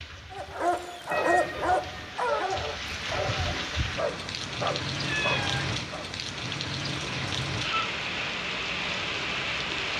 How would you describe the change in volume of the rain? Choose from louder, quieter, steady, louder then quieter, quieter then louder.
louder.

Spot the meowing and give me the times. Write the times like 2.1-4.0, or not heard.
1.1-2.1, 5.0-5.8.